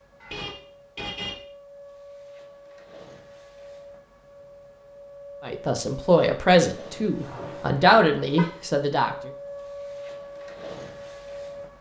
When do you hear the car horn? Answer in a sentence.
The car horn can be heard from 0.2 to 1.4 s and from 7.2 to 8.4 s.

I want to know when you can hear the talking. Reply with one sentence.
You can hear the talking from 5.5 to 9.3 s.